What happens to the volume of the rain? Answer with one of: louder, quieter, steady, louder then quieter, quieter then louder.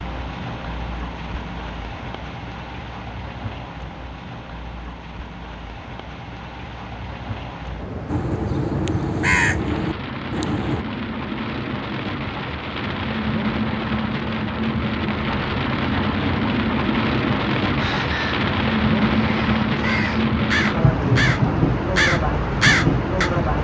louder.